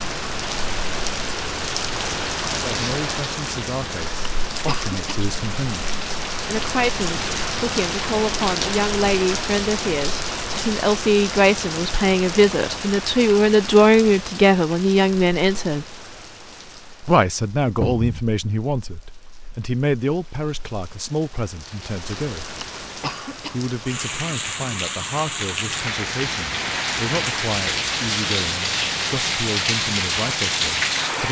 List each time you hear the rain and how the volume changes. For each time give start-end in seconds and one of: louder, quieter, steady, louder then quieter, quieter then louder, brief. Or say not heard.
0.0-31.2 quieter then louder.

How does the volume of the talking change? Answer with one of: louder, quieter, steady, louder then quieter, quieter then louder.
louder then quieter.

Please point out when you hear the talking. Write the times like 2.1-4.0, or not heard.
2.5-15.8, 17.0-22.4, 23.5-31.2.